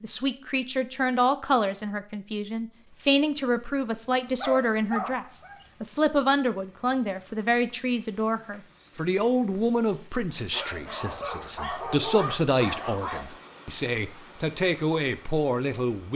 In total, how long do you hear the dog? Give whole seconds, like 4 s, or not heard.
4 s.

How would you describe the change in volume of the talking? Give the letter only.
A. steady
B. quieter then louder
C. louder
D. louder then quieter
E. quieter
A.